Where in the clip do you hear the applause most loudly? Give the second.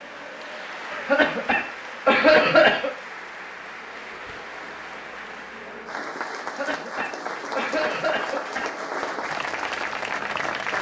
10 s.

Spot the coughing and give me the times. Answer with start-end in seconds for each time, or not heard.
0.9-2.9, 6.4-8.8.